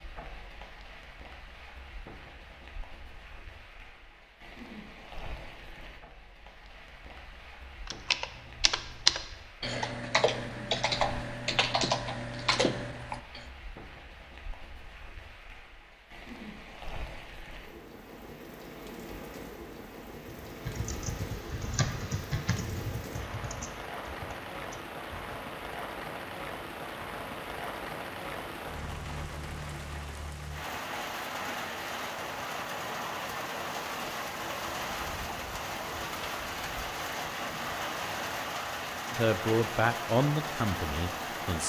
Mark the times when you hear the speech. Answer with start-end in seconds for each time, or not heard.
39.1-41.6.